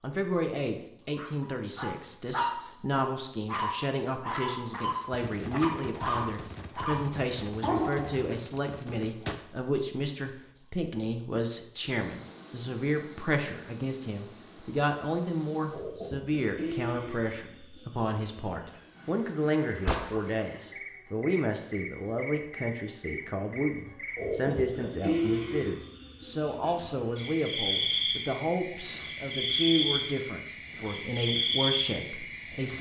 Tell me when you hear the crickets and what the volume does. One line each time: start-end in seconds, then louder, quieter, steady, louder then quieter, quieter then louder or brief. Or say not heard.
0.0-32.7 quieter then louder.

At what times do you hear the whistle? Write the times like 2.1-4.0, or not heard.
not heard.